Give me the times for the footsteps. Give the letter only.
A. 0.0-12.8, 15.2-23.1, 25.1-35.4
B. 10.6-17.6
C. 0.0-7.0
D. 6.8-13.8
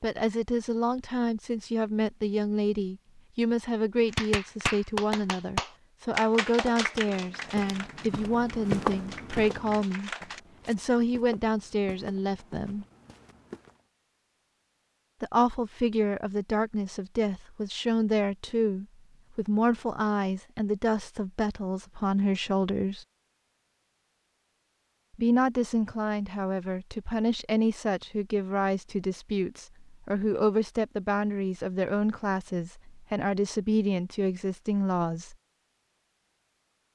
D.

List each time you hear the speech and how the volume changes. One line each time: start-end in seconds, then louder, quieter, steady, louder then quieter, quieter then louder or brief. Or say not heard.
0.0-12.8 steady
15.2-23.1 steady
25.1-35.4 steady.